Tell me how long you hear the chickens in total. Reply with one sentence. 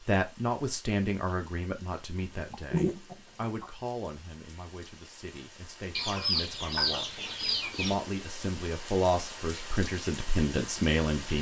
You can hear the chickens for 3 seconds altogether.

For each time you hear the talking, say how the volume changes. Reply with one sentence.
You can hear the talking from 0.1 to 11.3 s, getting quieter then louder.